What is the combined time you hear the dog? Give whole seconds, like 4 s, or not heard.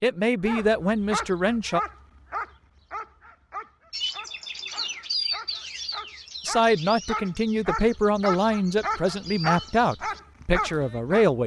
11 s.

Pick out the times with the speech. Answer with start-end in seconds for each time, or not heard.
0.0-1.8, 6.5-11.4.